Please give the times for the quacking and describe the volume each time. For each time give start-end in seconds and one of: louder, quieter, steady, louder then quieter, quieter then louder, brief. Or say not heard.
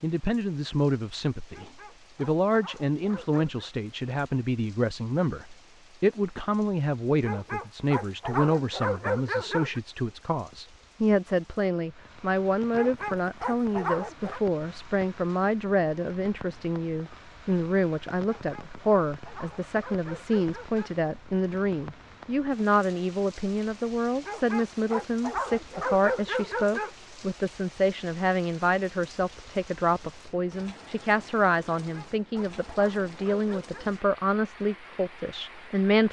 not heard.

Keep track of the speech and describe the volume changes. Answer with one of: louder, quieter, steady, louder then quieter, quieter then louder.
steady.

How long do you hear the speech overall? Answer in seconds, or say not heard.
36 s.